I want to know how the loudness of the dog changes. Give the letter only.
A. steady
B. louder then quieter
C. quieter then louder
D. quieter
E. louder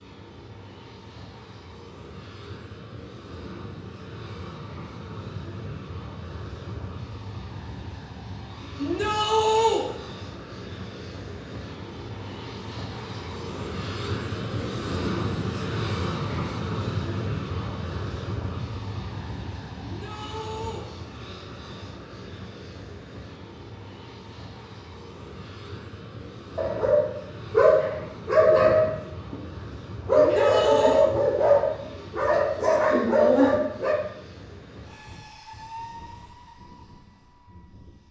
A.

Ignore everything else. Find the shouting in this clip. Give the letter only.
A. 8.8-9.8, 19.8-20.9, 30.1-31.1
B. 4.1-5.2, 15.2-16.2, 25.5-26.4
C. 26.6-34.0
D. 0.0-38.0
A.